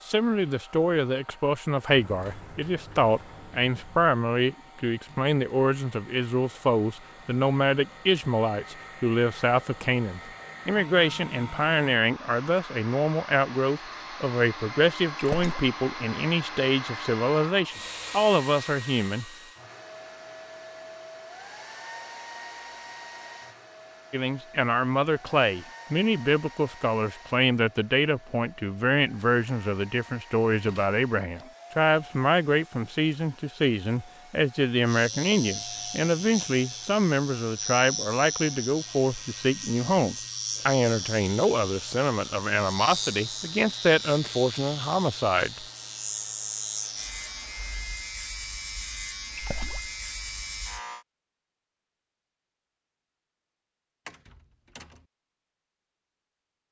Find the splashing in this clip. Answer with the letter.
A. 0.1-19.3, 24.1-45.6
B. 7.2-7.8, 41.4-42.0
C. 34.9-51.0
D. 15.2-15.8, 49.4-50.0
D.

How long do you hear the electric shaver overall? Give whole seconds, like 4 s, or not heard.
16 s.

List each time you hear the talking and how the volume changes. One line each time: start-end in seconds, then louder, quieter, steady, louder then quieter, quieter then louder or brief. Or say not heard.
0.1-19.3 steady
24.1-45.6 steady.